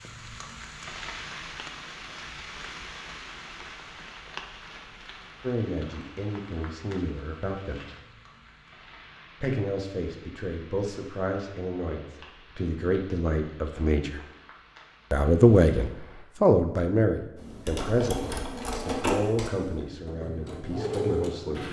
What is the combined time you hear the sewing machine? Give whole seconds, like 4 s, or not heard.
4 s.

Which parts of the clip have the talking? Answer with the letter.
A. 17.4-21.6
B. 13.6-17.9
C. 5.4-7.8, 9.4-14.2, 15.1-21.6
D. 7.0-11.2
C.